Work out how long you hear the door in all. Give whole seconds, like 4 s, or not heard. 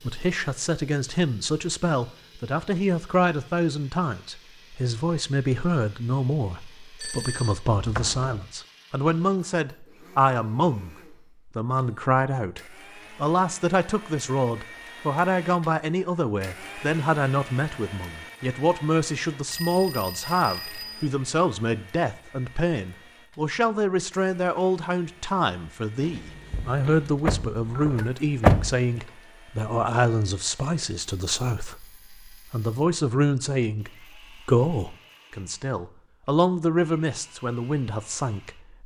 3 s.